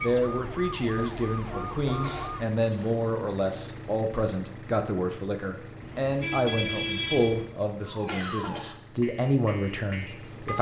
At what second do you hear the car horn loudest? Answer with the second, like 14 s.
7 s.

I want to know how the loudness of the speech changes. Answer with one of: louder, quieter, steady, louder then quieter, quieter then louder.
steady.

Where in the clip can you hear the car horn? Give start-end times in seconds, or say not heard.
1.4-2.8, 5.8-7.5.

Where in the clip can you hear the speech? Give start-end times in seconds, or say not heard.
0.0-10.5.